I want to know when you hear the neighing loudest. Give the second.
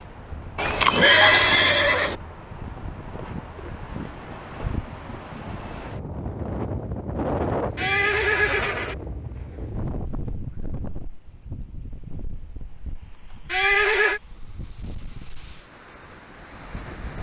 1 s.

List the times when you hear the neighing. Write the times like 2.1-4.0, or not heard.
0.6-2.1, 7.8-8.9, 13.5-14.2.